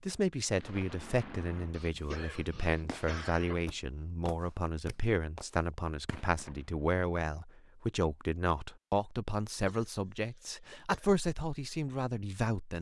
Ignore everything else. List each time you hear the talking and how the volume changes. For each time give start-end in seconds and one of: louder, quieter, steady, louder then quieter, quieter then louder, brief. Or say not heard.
0.0-12.7 steady.